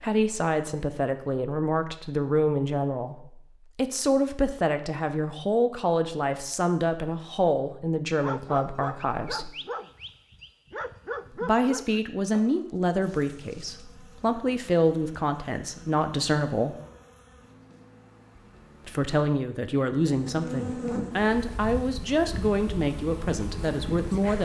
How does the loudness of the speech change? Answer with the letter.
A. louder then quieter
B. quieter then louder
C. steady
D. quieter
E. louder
C.